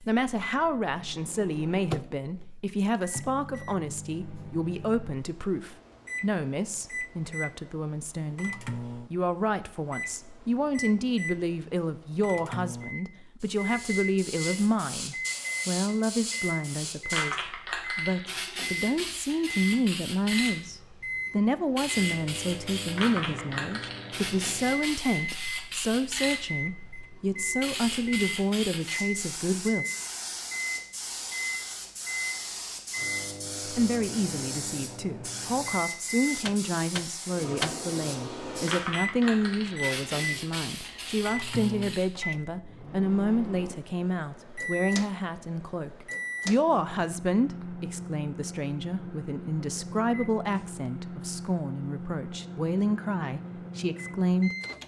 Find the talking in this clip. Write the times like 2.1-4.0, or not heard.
0.0-29.9, 33.7-54.5.